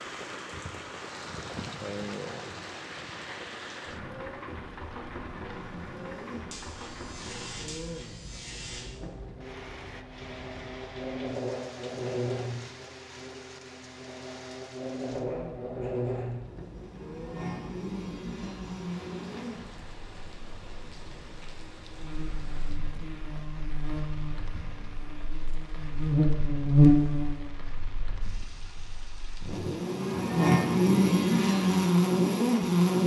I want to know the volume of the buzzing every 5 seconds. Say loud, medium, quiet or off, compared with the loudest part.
off, quiet, quiet, quiet, quiet, loud, loud.